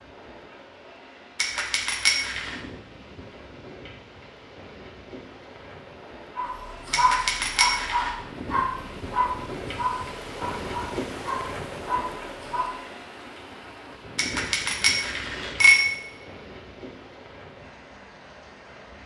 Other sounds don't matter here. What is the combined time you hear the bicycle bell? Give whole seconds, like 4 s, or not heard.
4 s.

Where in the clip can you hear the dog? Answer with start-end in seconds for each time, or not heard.
6.3-12.8.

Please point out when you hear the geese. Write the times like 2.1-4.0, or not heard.
not heard.